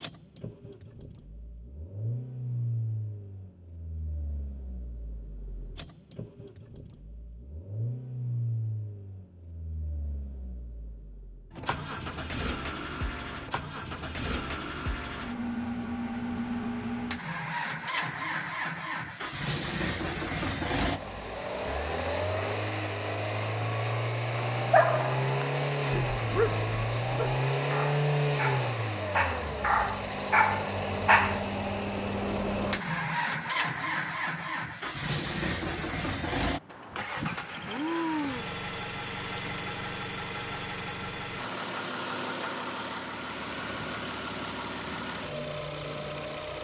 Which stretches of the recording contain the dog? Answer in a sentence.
The dog can be heard from 24.4 to 31.4 s.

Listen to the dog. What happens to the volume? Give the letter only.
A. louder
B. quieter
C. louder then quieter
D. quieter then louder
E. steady
A.